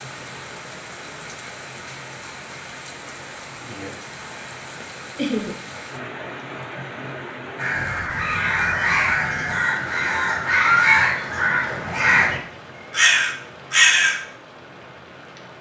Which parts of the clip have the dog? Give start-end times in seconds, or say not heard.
not heard.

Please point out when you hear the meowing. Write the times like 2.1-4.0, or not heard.
not heard.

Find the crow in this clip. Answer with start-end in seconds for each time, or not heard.
7.5-14.2.